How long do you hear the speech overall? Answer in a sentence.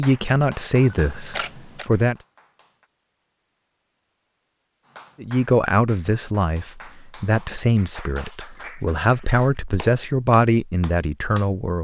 You can hear the speech for 9 seconds altogether.